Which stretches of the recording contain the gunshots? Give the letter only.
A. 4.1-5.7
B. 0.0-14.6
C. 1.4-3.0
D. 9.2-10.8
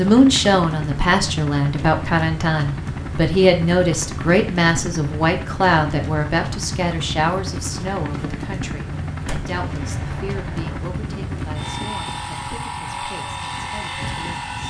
D.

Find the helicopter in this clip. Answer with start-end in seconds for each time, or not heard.
0.0-14.6.